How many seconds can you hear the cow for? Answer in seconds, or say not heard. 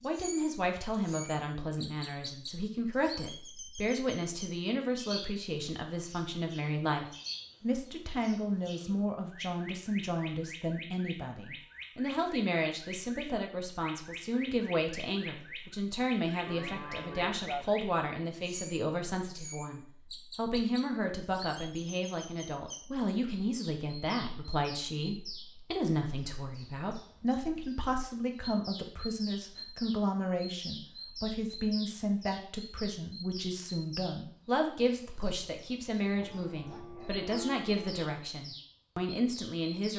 3 s.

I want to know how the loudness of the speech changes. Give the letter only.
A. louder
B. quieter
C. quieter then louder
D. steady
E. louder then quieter
D.